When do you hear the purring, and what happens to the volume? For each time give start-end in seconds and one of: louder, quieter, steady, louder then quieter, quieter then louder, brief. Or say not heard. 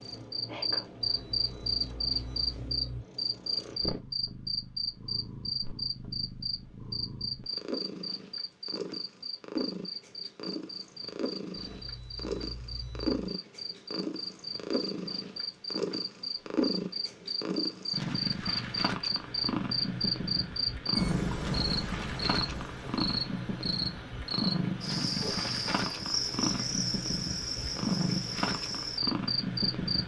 0.0-30.0 louder.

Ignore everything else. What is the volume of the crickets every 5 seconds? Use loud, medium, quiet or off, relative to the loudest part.
loud, medium, medium, loud, loud, loud.